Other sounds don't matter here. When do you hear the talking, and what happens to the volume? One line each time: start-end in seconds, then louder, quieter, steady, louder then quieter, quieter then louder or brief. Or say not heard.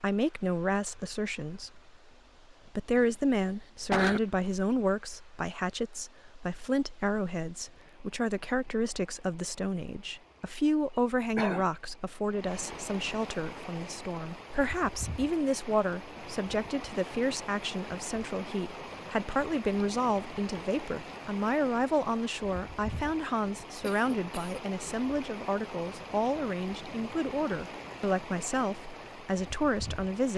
0.0-1.9 brief
2.6-30.3 steady.